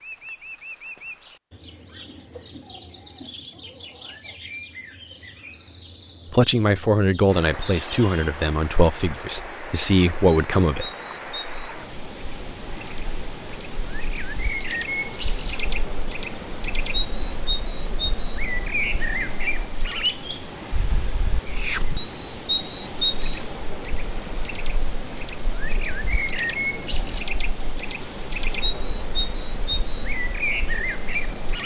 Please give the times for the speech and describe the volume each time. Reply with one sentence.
The speech can be heard from 6.3 to 10.9 s, getting quieter then louder.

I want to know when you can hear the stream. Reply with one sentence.
The stream can be heard from 7.2 to 31.6 s.